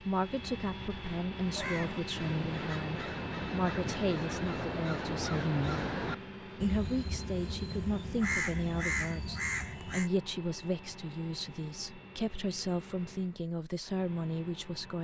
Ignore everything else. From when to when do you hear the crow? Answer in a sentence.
The crow can be heard from 1.5 to 10.1 s.